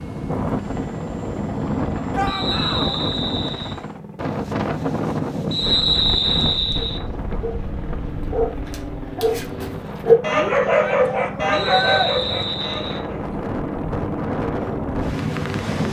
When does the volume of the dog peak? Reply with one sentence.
The loudest moment of the dog is at 10 seconds.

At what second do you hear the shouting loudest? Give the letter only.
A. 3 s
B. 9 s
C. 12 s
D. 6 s
C.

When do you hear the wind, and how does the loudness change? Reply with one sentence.
The wind can be heard from 0.0 to 15.8 s, getting quieter then louder.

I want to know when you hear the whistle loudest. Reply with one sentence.
The volume of the whistle peaks at 6 seconds.